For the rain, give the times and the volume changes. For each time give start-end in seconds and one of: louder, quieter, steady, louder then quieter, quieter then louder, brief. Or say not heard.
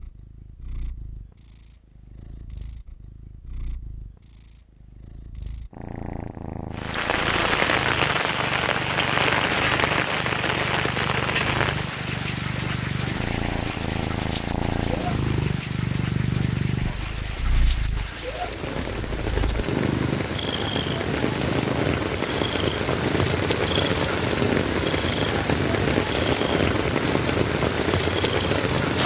6.8-29.0 quieter then louder.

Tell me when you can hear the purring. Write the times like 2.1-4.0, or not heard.
0.0-29.0.